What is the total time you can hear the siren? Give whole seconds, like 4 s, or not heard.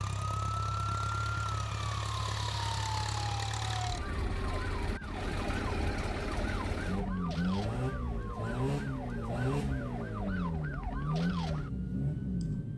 13 s.